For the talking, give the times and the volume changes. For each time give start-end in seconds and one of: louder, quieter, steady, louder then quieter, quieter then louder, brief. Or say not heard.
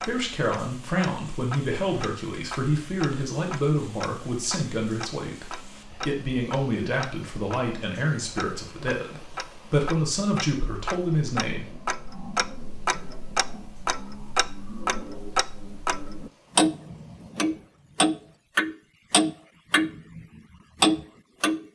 0.0-11.7 steady.